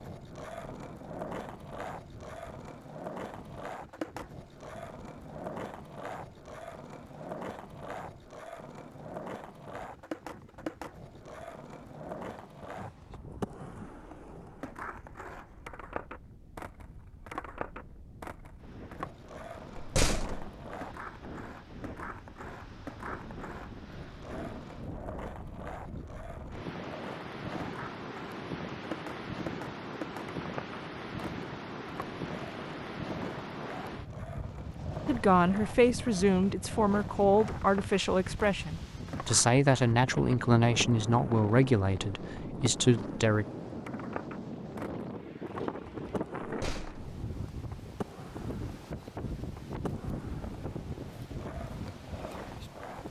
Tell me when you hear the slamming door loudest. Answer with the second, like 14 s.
20 s.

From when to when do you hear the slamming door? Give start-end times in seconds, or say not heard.
19.8-20.4, 46.4-47.1.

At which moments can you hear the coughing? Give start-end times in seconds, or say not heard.
not heard.